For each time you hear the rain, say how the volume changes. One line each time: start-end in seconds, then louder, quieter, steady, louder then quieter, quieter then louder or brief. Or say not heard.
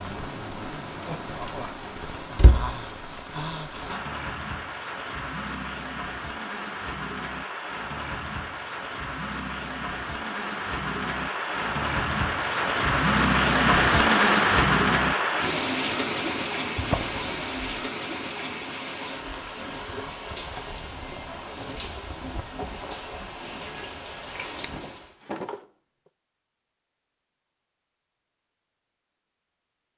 0.0-25.2 louder then quieter.